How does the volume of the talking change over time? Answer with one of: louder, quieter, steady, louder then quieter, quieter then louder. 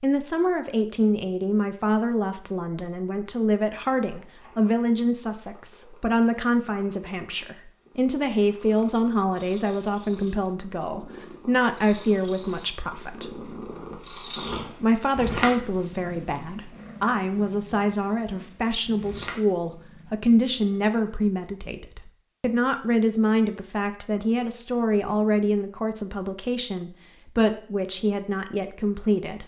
steady.